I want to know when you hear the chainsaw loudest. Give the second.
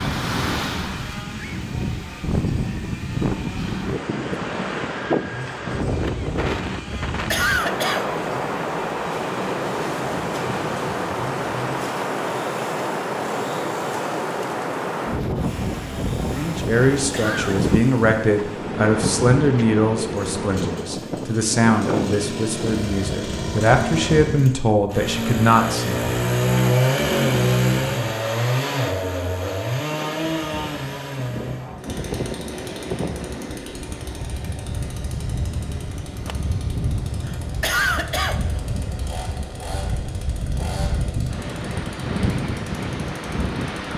27 s.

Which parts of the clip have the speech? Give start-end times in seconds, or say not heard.
16.3-26.1.